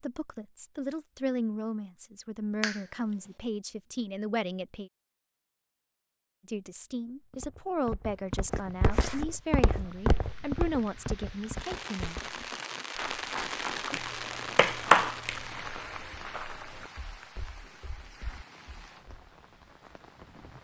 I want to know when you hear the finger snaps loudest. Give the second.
15 s.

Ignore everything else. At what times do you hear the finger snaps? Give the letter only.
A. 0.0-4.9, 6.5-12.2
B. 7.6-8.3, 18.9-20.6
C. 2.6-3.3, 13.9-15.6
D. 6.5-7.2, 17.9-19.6
C.